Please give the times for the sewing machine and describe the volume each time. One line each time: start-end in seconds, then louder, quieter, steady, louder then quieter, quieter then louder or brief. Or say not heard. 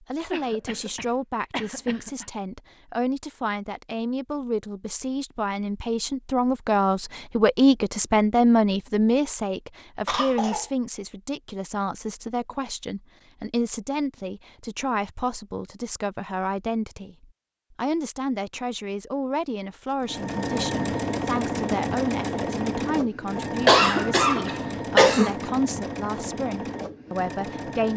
20.0-27.9 quieter.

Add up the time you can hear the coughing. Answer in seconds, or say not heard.
4 s.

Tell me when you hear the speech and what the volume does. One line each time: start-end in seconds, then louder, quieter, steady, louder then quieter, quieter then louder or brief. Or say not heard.
0.0-27.9 louder then quieter.